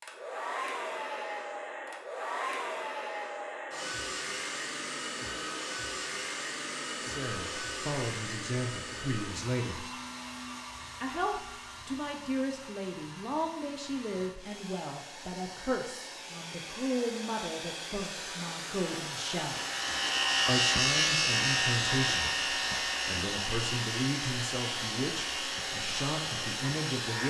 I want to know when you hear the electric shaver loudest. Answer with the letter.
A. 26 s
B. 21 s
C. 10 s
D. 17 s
B.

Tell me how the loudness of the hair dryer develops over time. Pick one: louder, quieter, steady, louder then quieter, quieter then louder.
quieter then louder.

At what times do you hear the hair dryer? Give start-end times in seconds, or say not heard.
0.0-27.2.